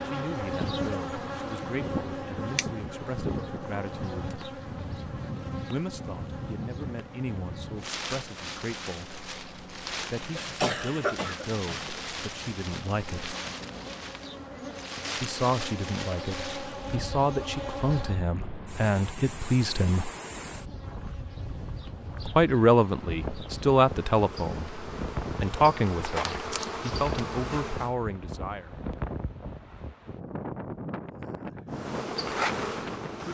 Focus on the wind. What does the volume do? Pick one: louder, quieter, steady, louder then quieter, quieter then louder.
steady.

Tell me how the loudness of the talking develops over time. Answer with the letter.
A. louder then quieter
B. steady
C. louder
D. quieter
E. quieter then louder
C.